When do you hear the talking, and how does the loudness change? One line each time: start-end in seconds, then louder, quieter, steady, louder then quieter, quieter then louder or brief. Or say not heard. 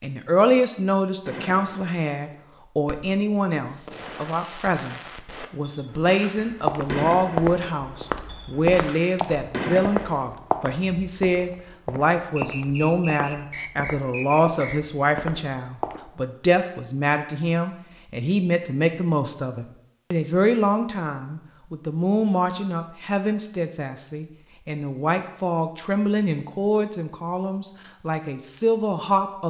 0.0-29.4 steady.